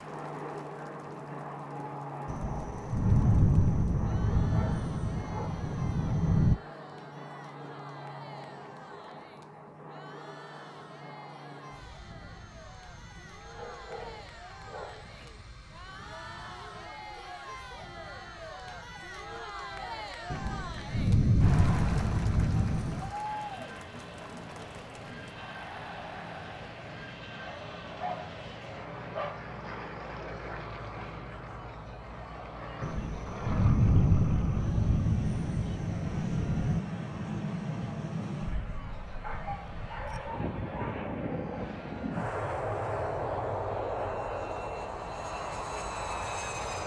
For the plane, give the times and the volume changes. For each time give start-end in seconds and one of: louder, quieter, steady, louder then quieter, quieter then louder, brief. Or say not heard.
0.0-46.8 quieter then louder.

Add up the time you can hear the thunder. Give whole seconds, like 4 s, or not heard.
11 s.